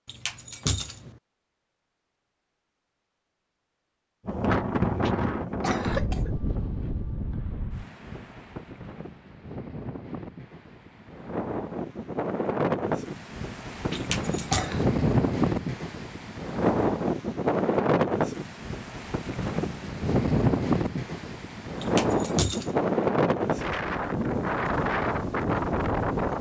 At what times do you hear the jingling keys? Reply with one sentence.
The jingling keys can be heard from 0.1 to 1.1 s, from 13.9 to 14.7 s and from 21.8 to 22.9 s.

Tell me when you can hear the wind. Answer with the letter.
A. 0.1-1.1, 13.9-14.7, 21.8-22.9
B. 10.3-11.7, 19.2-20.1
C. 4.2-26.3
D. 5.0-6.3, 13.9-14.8
C.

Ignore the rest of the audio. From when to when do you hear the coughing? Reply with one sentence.
The coughing can be heard from 5.0 to 6.3 s and from 13.9 to 14.8 s.